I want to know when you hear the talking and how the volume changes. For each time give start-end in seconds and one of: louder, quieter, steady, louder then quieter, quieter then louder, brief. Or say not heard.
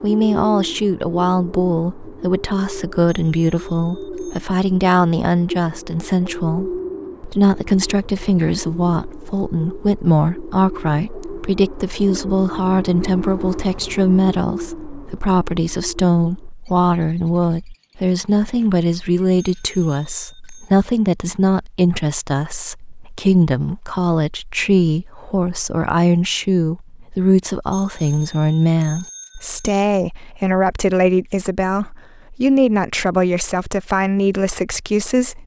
0.0-35.4 steady.